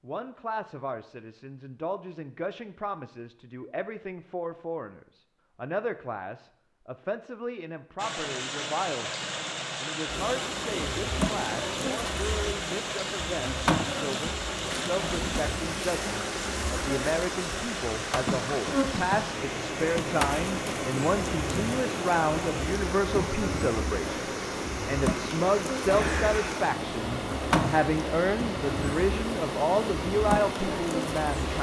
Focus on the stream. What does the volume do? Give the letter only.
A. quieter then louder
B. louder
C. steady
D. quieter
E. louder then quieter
C.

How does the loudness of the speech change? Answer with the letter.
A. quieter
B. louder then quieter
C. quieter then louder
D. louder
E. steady
D.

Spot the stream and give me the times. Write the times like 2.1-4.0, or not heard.
8.0-31.5.